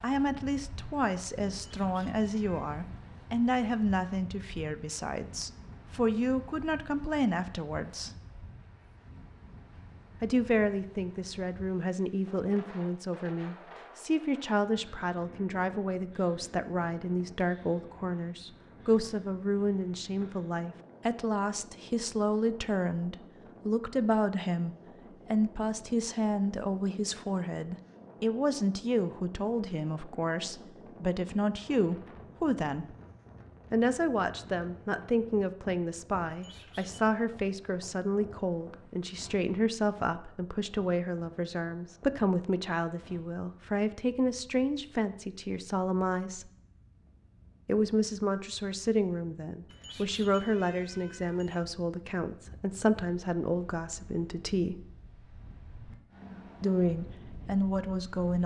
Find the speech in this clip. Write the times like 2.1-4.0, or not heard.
0.0-8.1, 10.2-33.0, 33.7-46.5, 47.6-54.8, 56.6-58.4.